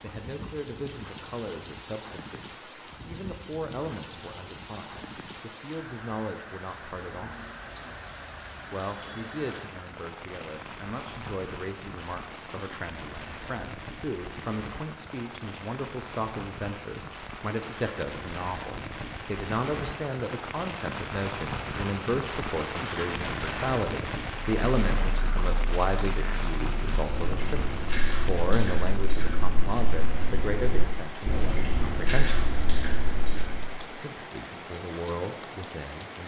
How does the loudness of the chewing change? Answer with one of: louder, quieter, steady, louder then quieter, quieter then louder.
louder.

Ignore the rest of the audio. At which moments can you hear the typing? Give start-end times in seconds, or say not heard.
not heard.